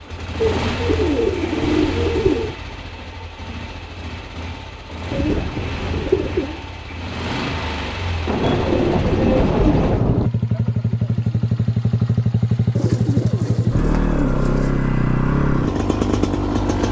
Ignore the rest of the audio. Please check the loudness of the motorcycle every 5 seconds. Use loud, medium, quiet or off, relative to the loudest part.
medium, medium, loud, loud.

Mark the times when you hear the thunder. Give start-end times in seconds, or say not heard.
8.2-10.3.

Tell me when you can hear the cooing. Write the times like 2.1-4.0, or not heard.
0.4-2.5, 5.1-6.6, 8.4-10.1, 12.8-14.9.